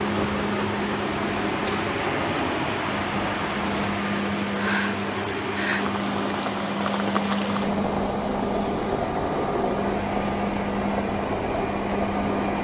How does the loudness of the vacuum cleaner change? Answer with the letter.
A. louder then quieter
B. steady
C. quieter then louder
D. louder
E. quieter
B.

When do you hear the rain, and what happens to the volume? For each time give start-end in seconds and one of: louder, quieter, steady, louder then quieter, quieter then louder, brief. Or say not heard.
0.0-12.5 steady.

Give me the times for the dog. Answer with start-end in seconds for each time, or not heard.
not heard.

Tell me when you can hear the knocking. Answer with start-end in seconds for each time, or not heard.
not heard.